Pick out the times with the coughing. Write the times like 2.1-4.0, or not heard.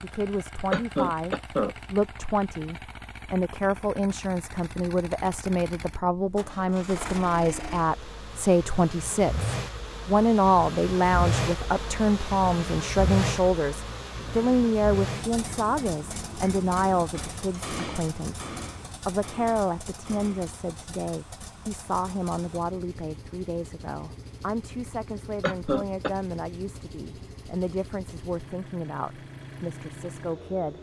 0.7-1.8, 25.4-26.1.